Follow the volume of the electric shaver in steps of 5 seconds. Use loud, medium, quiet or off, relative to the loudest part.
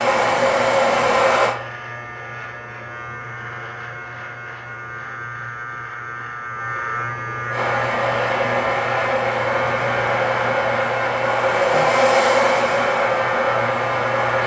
medium, loud, loud.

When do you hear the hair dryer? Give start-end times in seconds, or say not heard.
0.0-1.6, 7.5-14.4.